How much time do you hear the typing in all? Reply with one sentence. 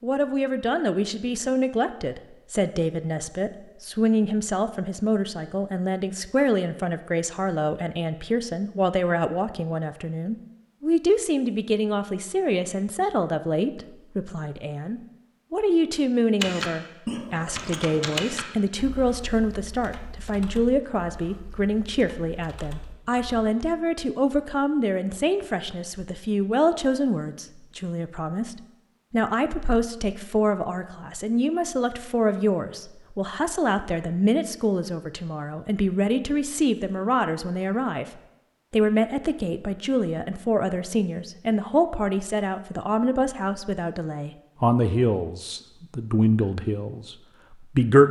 You can hear the typing for 7 seconds altogether.